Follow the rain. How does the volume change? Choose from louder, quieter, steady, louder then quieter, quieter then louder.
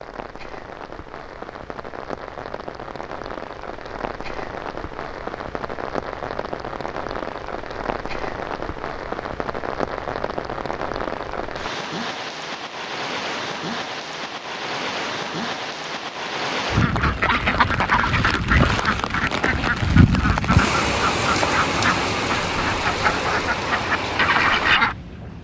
louder.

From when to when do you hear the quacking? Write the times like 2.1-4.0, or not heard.
16.8-24.9.